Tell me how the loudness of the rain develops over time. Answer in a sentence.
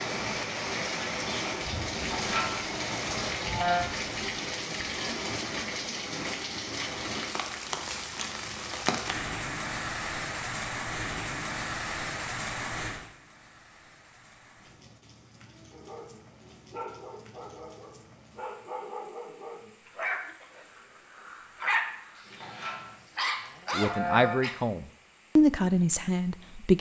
The loudness of the rain goes down.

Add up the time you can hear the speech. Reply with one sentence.
The speech can be heard for 3 seconds in total.